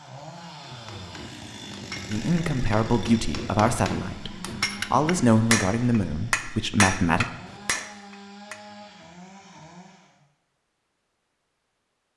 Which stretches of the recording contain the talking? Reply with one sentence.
The talking can be heard from 2.1 to 7.3 s.